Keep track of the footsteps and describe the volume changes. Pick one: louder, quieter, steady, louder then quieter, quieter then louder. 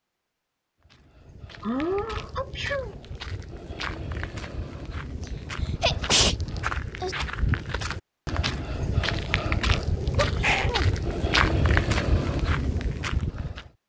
louder.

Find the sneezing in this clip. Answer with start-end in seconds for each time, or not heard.
1.6-3.0, 5.8-7.2, 10.2-10.8.